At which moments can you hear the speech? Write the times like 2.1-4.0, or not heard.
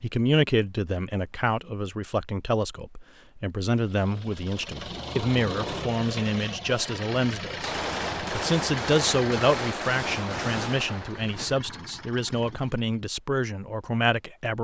0.0-14.5.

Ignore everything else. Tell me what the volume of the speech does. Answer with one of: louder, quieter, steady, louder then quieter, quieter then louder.
steady.